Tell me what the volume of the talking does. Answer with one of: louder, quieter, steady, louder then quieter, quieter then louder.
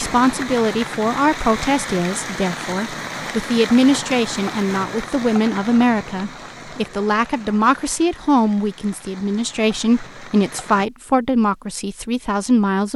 steady.